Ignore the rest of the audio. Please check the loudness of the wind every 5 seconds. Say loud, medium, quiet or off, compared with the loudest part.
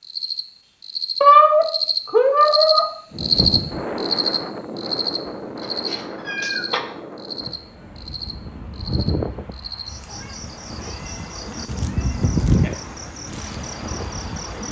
loud, medium, loud.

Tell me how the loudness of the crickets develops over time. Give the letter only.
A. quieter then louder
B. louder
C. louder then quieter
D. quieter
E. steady
D.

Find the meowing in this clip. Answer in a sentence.
You can hear the meowing from 1.2 to 2.9 s, from 5.8 to 6.8 s and from 10.1 to 12.7 s.